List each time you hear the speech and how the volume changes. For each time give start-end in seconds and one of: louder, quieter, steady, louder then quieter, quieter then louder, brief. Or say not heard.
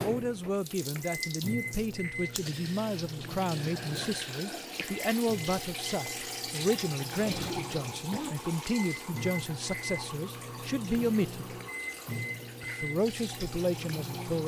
0.0-11.6 steady
12.6-14.4 brief.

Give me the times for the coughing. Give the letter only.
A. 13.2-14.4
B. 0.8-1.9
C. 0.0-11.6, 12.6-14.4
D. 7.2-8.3
D.